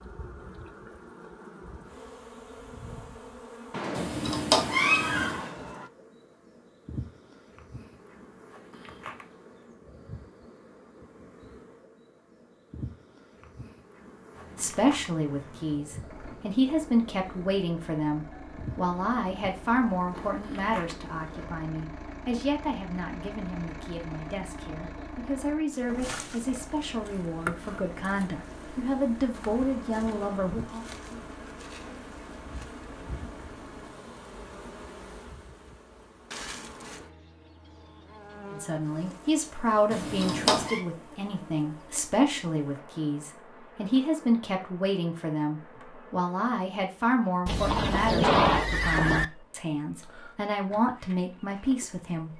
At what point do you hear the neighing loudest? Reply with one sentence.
The loudest moment of the neighing is at 48 seconds.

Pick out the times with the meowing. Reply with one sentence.
You can hear the meowing from 4.0 to 5.4 s and from 39.9 to 40.8 s.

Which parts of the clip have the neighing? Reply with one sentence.
You can hear the neighing from 3.7 to 5.9 s and from 47.5 to 49.2 s.